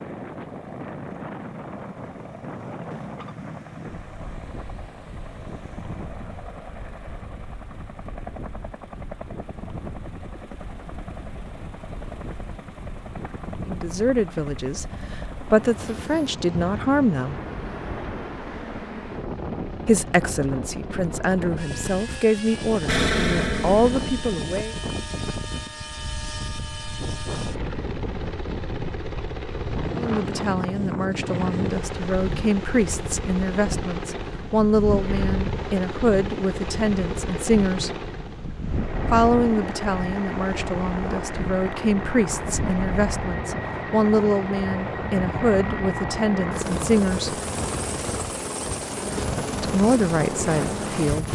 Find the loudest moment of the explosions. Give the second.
23 s.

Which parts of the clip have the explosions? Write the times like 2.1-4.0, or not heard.
22.9-24.4.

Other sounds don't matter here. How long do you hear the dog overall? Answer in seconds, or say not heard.
not heard.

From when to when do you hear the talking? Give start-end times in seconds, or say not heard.
13.7-17.4, 19.9-24.8, 29.9-38.0, 39.1-47.4, 49.6-51.3.